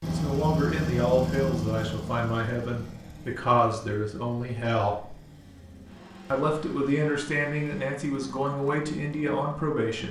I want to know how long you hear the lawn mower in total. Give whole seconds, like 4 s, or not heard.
10 s.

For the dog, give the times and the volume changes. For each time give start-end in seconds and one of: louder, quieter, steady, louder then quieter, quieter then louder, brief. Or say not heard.
not heard.